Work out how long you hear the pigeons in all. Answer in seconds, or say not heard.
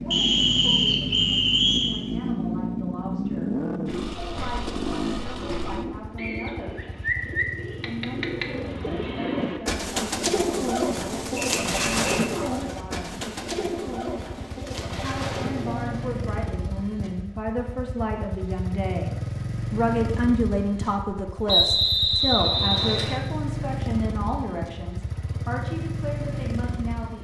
11 s.